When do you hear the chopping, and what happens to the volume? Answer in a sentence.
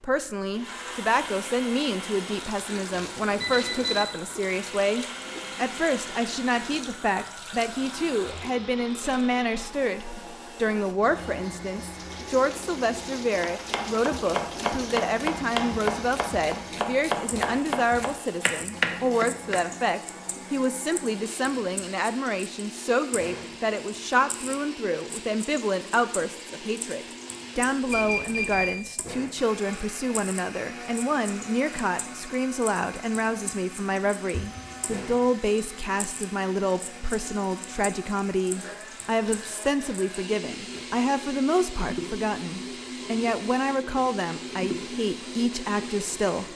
You can hear the chopping from 13.4 to 19.9 s, at a steady volume.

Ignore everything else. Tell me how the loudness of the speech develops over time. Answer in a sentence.
The loudness of the speech stays about the same.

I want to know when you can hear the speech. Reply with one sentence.
The speech can be heard from 0.0 to 46.5 s.